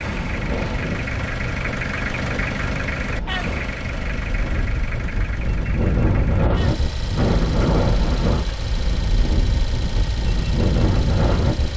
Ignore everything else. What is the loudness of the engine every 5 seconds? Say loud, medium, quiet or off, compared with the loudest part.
loud, medium, medium.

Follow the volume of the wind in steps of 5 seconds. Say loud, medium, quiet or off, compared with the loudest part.
medium, loud, loud.